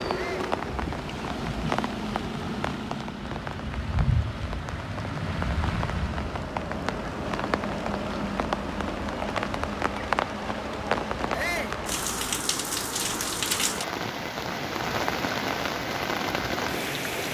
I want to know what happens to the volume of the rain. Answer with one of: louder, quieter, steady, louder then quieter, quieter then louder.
steady.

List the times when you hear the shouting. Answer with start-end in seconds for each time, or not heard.
0.1-0.5, 11.3-11.8.